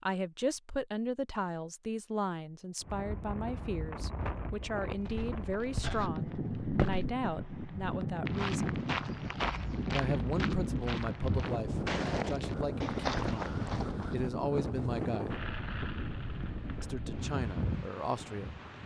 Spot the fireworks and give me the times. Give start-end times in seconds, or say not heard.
15.3-16.9.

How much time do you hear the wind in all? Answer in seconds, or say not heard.
16 s.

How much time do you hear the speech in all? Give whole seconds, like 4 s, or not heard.
16 s.